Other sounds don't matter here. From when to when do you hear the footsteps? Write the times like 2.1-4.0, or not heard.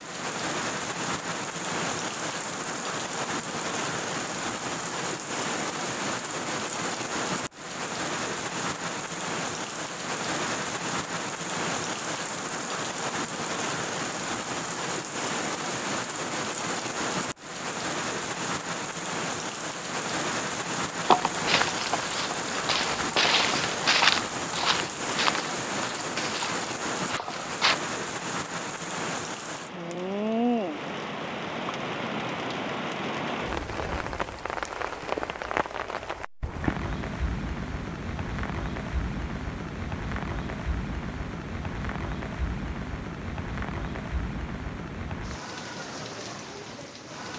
21.0-27.8.